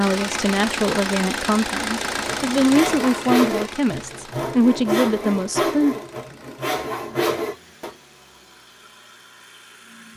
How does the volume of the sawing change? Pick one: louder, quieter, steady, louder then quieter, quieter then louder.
steady.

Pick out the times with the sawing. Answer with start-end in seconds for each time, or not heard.
1.9-8.0.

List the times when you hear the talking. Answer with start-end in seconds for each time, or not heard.
0.0-6.0.